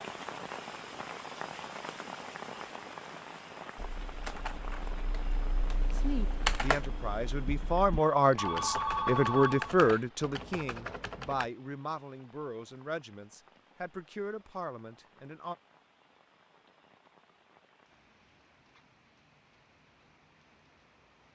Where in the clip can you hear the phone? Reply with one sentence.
You can hear the phone from 8.3 to 10.1 s.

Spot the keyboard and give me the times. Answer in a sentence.
You can hear the keyboard from 3.8 to 11.4 s.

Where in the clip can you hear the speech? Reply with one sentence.
The speech can be heard from 5.9 to 15.6 s.